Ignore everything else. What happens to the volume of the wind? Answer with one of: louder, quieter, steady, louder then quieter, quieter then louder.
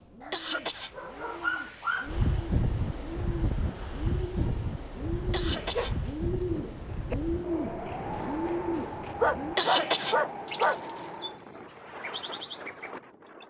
quieter.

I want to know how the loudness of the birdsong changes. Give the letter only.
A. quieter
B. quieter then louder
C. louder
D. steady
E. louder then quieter
E.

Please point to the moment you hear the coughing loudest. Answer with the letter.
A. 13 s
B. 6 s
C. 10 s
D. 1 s
C.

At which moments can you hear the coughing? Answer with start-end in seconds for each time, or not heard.
0.3-0.9, 5.3-6.0, 9.6-11.1.